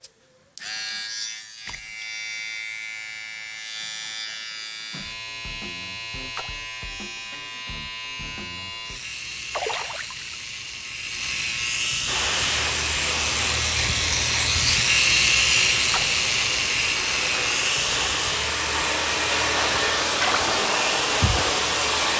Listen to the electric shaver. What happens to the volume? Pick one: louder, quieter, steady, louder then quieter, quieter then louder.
louder then quieter.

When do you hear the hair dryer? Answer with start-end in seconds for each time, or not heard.
12.1-22.1.